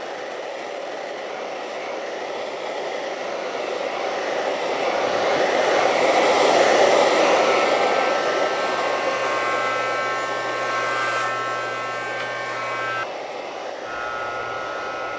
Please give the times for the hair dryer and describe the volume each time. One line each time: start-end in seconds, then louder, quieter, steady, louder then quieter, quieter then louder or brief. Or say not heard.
0.0-15.1 louder then quieter.